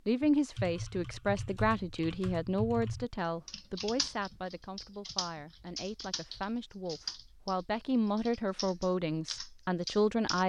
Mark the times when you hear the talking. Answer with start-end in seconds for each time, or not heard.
0.1-10.4.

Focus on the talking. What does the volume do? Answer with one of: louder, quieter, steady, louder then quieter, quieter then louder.
quieter then louder.